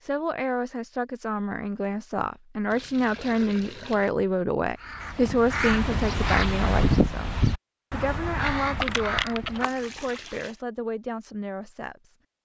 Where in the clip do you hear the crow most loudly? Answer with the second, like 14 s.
7 s.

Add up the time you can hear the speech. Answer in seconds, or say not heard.
12 s.